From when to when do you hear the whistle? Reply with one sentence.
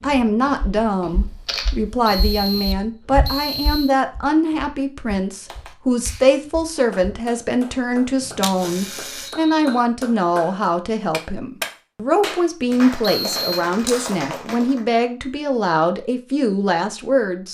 The whistle can be heard from 2.0 to 4.0 s, from 8.2 to 9.8 s and from 13.0 to 13.4 s.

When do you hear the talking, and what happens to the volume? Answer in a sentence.
The talking can be heard from 0.0 to 17.5 s, at a steady volume.